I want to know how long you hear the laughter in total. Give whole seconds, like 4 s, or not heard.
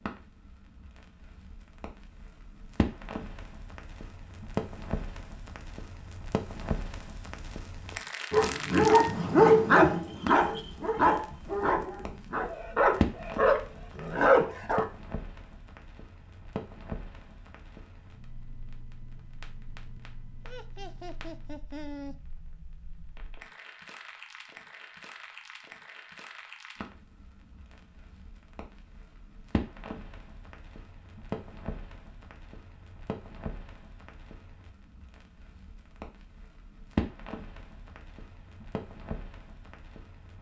2 s.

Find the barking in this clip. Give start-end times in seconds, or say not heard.
8.3-14.8.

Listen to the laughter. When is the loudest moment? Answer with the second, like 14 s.
22 s.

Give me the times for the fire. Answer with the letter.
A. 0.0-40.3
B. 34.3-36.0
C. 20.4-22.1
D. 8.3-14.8
A.